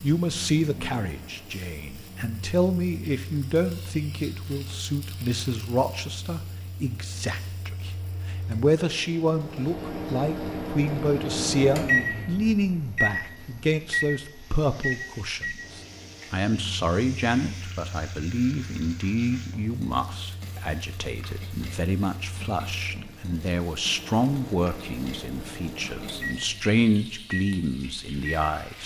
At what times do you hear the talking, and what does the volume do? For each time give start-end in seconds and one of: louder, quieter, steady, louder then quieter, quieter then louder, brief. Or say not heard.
0.0-28.8 steady.